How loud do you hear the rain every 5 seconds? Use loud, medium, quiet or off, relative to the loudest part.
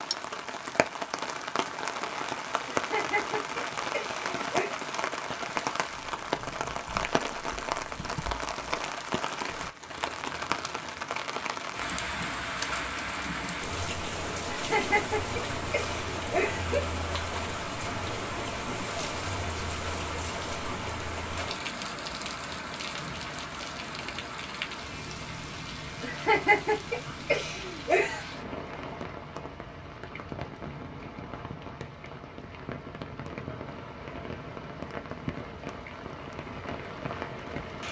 loud, loud, loud, loud, loud, medium, medium, medium.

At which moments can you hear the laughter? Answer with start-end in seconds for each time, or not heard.
2.6-4.7, 14.4-16.8, 26.0-28.2.